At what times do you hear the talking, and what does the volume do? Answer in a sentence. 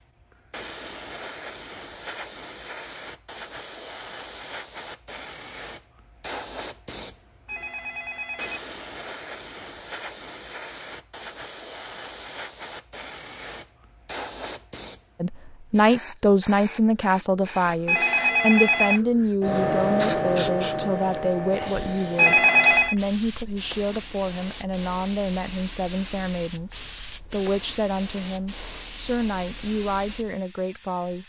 You can hear the talking from 15.2 to 31.2 s, getting quieter.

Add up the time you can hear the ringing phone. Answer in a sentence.
The ringing phone can be heard for 3 seconds in total.